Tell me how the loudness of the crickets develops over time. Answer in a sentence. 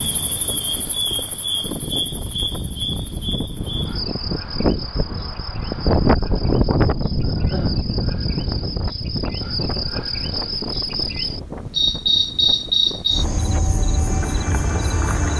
The volume of the crickets goes down, then up.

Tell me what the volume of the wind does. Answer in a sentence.
The volume of the wind goes up, then down.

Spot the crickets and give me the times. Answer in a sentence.
The crickets can be heard from 0.0 to 15.3 s.